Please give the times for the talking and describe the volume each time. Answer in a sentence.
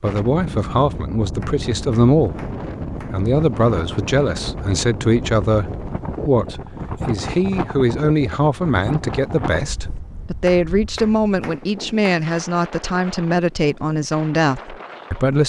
You can hear the talking from 0.0 to 15.4 s, at a steady volume.